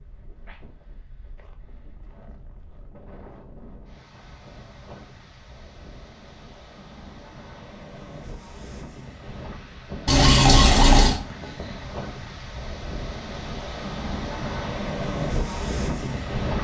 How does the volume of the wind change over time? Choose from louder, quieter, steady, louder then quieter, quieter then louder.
louder.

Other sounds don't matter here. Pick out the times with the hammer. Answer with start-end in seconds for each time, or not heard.
not heard.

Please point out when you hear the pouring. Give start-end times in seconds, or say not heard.
10.1-11.2.